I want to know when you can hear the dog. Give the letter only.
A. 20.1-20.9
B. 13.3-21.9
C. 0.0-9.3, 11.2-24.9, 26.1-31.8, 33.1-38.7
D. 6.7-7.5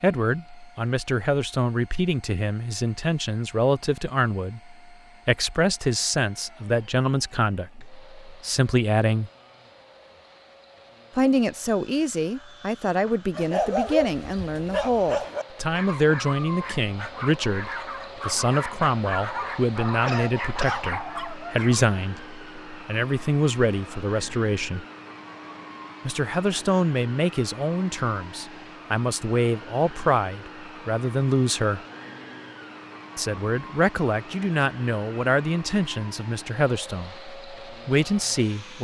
B.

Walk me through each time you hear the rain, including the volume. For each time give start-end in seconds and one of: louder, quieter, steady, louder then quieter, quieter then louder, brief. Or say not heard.
not heard.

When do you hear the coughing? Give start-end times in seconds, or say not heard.
20.1-20.9.